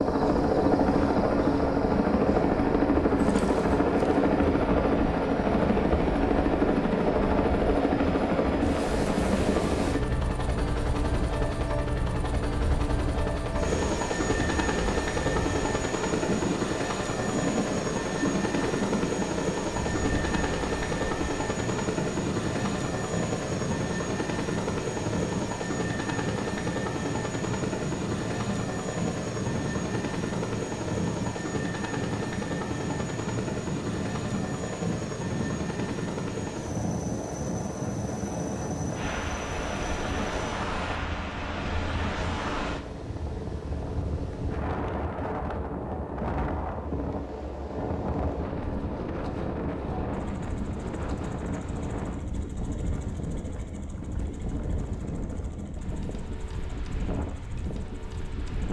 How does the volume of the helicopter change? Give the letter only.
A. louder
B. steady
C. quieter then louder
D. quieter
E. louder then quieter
D.